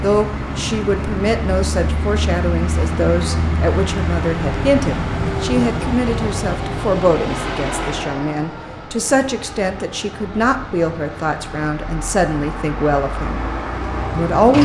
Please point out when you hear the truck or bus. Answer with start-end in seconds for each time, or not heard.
0.0-14.5.